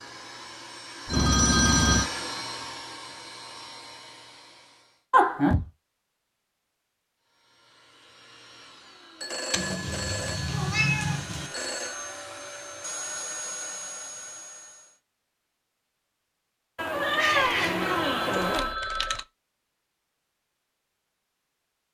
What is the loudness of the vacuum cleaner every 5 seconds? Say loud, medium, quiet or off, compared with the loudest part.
loud, quiet, loud, off, off.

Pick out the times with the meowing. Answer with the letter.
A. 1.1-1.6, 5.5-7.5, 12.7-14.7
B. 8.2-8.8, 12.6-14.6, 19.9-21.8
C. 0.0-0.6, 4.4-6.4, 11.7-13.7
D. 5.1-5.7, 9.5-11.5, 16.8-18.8
D.